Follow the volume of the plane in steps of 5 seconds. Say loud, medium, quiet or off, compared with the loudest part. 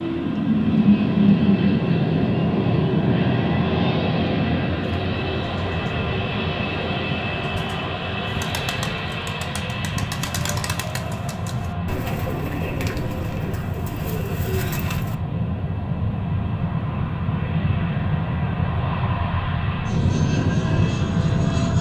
loud, medium, medium, medium, loud.